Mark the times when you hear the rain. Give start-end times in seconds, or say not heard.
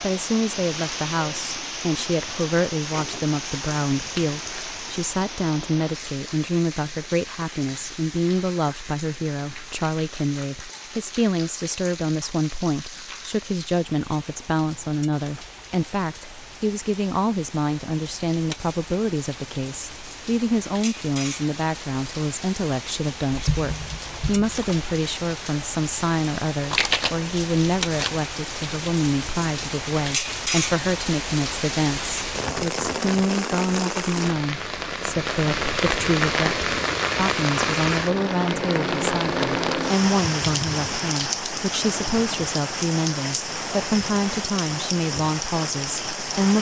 0.0-46.5.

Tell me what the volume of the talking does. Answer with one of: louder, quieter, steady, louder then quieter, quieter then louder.
steady.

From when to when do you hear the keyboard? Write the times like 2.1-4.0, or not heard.
23.3-24.6.